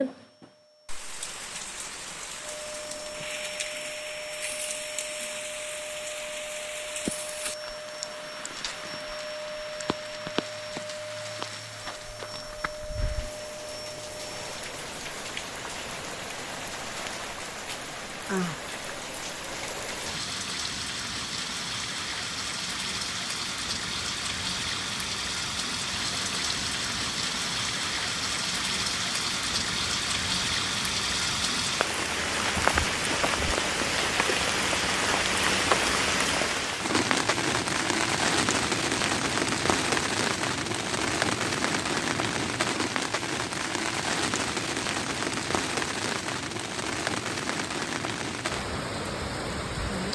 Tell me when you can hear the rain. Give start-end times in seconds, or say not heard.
0.0-50.0.